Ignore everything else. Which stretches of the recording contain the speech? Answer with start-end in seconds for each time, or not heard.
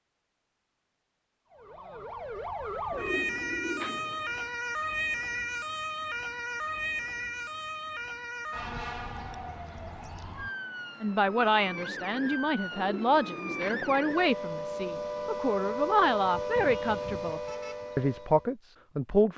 11.0-19.3.